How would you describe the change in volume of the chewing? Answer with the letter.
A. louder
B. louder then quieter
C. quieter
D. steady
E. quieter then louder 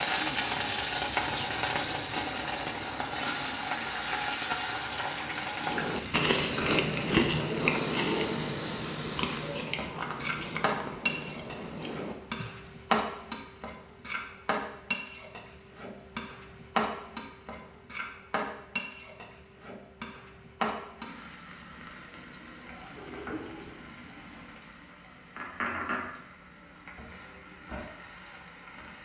C.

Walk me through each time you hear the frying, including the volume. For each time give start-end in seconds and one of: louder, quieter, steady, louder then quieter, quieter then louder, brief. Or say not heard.
0.0-28.9 quieter.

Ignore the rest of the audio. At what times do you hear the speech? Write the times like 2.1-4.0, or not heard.
not heard.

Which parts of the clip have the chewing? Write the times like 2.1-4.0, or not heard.
5.5-12.6.